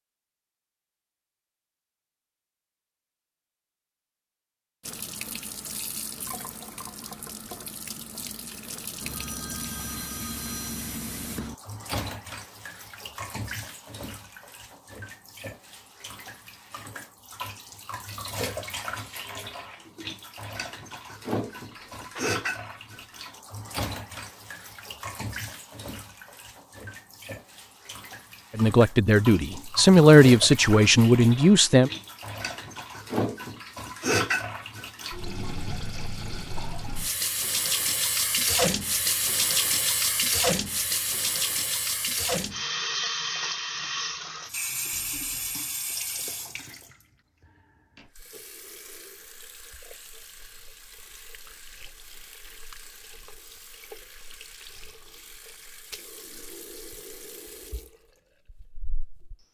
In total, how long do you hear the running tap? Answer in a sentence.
You can hear the running tap for 55 seconds altogether.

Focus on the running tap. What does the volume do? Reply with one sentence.
The loudness of the running tap goes up, then down.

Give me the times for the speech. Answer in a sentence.
The speech can be heard from 28.6 to 31.9 s.